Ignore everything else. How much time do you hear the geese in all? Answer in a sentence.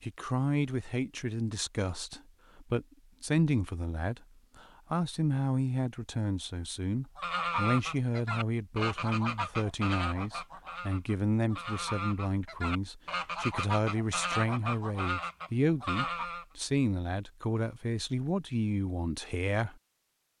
You can hear the geese for 9 seconds altogether.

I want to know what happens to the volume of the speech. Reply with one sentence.
The loudness of the speech stays about the same.